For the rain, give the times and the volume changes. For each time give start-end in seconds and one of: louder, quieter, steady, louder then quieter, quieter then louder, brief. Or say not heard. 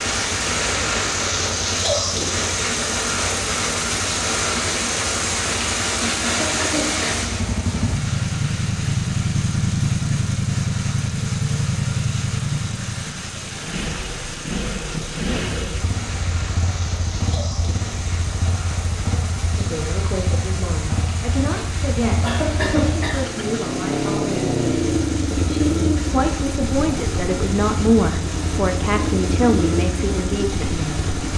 0.0-31.3 quieter.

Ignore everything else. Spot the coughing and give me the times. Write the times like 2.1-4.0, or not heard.
6.0-7.1, 22.1-23.5.